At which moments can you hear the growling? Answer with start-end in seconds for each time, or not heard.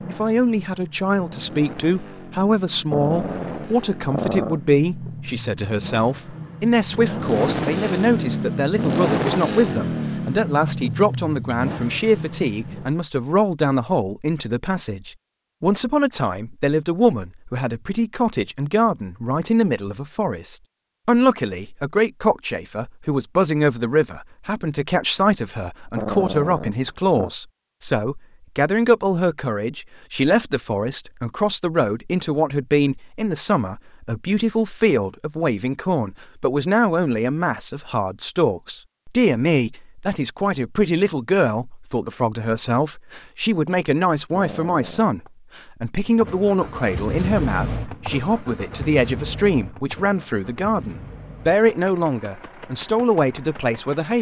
2.9-4.6, 25.9-27.3, 44.3-45.3.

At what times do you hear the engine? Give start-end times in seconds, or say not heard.
0.0-12.9, 46.0-54.1.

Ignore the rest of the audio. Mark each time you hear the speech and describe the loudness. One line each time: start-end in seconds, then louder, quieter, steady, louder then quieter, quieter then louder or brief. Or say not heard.
0.1-54.1 steady.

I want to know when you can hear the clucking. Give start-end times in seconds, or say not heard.
not heard.